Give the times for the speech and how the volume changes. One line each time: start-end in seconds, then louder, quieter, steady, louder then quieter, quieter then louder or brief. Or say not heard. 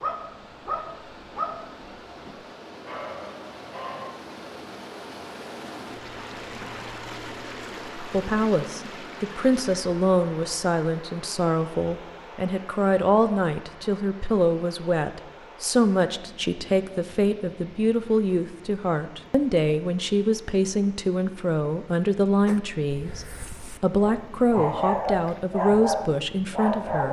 8.1-27.0 steady.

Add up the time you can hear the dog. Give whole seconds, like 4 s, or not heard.
9 s.